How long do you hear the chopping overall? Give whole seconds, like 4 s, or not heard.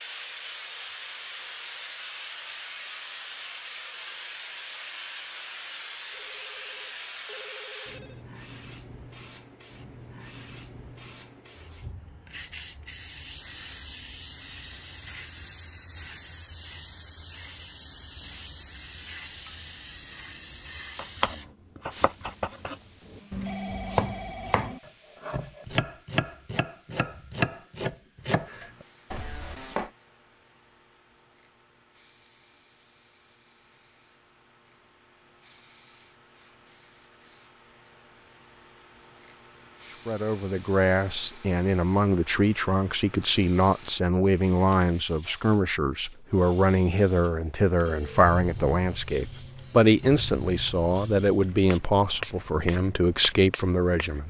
9 s.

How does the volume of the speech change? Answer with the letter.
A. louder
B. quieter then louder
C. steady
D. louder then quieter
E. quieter
C.